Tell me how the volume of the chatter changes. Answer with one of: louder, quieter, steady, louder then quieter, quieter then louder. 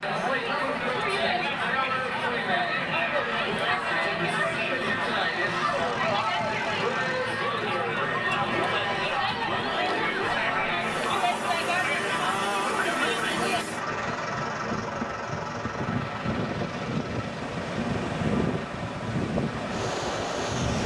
steady.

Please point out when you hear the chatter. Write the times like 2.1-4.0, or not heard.
0.0-13.7.